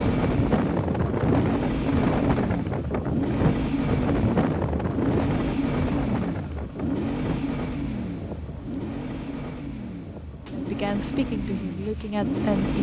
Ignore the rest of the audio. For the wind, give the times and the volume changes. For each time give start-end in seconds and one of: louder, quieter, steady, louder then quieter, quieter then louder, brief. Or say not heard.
0.0-12.6 quieter.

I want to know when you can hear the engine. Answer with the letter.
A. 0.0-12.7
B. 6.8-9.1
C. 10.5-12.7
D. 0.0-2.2
A.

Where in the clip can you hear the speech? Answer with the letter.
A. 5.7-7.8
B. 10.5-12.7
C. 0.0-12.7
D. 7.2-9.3
B.